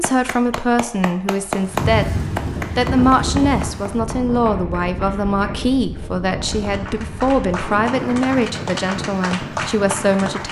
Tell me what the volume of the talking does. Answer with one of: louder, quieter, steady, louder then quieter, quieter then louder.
steady.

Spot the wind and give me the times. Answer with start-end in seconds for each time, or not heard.
1.5-10.4.